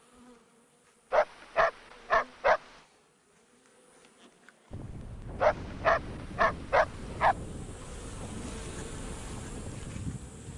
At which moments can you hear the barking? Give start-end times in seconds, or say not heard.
1.1-2.6, 5.4-7.3.